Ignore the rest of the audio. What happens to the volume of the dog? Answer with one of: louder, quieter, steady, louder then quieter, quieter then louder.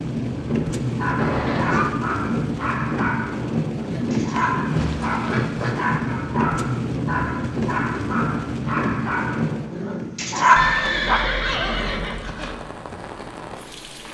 louder.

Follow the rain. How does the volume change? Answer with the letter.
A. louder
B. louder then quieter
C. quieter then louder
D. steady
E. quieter
E.